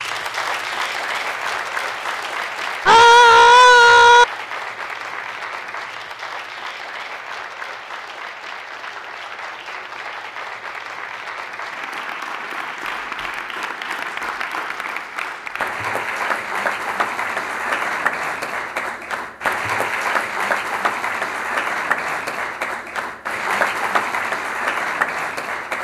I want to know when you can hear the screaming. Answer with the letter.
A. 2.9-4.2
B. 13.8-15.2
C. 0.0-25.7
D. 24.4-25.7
A.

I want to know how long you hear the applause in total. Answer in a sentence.
The applause can be heard for 26 seconds in total.